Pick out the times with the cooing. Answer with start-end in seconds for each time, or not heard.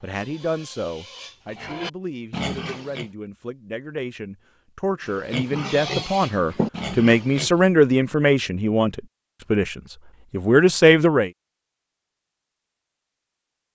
not heard.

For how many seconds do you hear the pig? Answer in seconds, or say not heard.
6 s.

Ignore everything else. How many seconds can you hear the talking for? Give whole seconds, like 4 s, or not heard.
11 s.